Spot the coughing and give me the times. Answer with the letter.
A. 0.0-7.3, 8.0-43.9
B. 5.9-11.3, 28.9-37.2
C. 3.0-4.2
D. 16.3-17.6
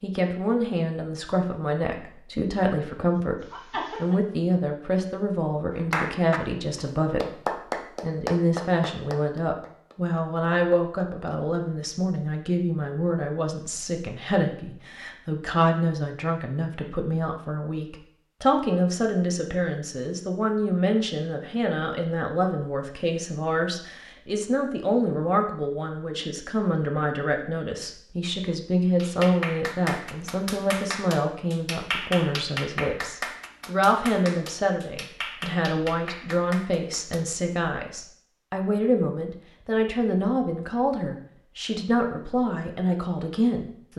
C.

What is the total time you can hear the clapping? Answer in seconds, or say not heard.
14 s.